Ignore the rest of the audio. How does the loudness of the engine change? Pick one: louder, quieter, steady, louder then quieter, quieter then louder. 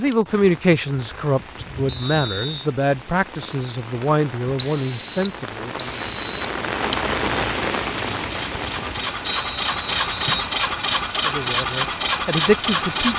louder.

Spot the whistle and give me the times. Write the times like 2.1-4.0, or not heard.
1.9-2.6, 4.5-6.6, 9.2-10.5.